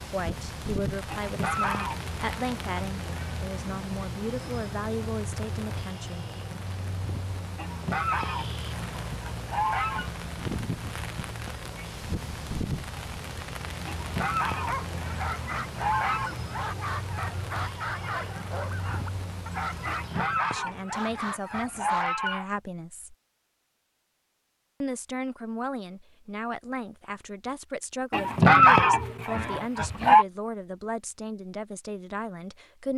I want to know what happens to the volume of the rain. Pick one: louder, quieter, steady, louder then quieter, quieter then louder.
steady.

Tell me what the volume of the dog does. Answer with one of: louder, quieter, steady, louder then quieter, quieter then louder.
steady.